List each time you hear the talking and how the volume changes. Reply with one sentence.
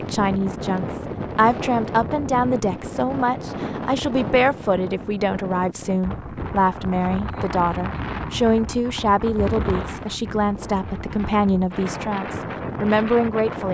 You can hear the talking from 0.0 to 13.6 s, at a steady volume.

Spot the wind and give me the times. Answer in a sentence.
The wind can be heard from 0.0 to 13.6 s.